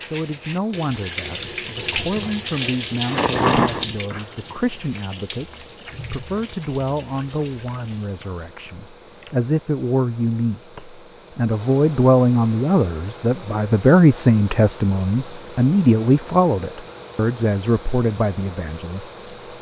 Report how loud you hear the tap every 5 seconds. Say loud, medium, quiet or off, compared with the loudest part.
loud, quiet, off, off.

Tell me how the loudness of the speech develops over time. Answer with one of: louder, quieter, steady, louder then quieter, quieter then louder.
louder.